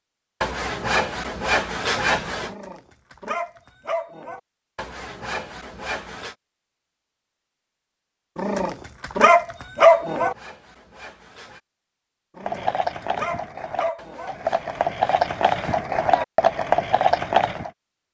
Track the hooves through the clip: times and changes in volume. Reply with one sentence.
You can hear the hooves from 12.4 to 17.7 s, getting louder.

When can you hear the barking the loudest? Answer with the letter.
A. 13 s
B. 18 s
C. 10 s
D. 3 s
C.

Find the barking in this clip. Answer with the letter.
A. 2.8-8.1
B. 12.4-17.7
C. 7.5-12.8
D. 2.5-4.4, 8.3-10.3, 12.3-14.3
D.